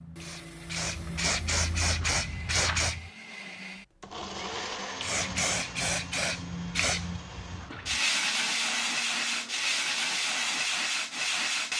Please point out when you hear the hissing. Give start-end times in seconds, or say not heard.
0.0-3.0, 5.0-11.7.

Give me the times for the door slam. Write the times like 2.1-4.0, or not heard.
not heard.